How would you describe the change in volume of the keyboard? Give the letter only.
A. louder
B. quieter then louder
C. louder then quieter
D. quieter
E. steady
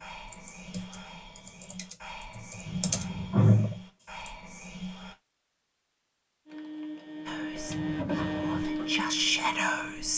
A.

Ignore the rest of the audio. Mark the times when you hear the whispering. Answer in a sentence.
The whispering can be heard from 0.0 to 5.2 s and from 7.2 to 10.1 s.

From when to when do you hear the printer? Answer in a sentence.
The printer can be heard from 6.5 to 10.1 s.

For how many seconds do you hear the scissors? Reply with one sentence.
You can hear the scissors for 2 seconds altogether.